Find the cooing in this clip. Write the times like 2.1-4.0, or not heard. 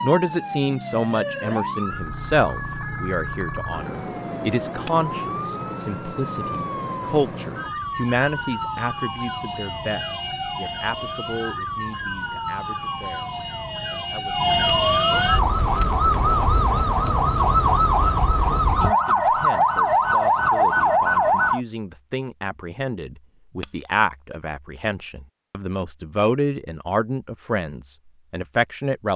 not heard.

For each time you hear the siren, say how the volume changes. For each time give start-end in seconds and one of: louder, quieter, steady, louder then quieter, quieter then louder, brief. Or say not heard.
0.0-21.6 louder.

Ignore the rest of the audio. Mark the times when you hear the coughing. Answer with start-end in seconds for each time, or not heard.
not heard.